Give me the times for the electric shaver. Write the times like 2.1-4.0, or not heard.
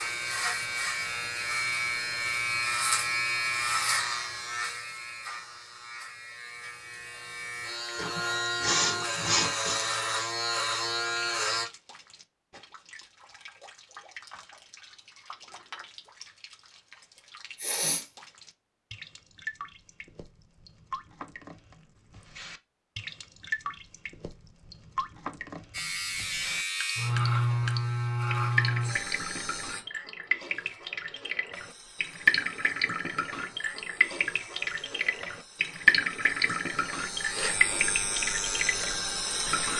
0.0-11.7, 25.7-29.9, 31.5-39.7.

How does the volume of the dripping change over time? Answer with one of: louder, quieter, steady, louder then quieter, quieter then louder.
louder.